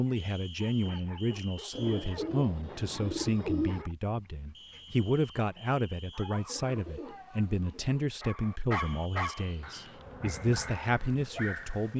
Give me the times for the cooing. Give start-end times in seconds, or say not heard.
1.7-3.9, 6.3-8.1.